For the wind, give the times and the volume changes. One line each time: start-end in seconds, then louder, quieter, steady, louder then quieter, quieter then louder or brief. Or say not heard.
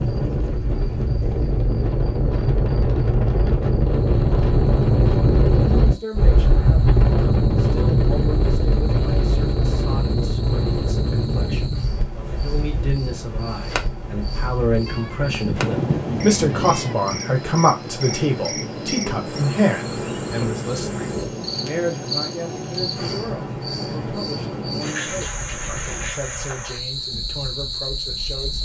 0.0-28.6 quieter.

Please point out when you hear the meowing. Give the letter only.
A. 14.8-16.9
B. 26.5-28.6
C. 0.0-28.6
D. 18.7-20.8
A.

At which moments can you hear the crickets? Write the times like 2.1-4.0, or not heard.
0.0-28.6.